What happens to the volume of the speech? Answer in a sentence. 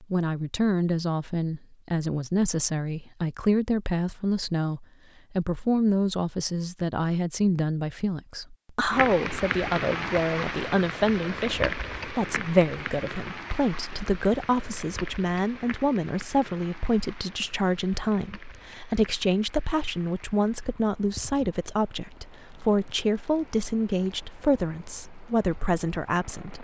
The loudness of the speech stays about the same.